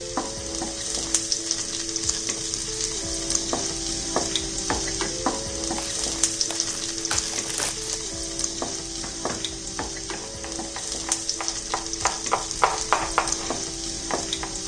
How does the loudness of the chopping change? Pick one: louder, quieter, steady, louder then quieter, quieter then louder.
louder then quieter.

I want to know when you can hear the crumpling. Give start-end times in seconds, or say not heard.
5.8-8.0.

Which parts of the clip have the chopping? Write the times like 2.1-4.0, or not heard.
9.0-14.6.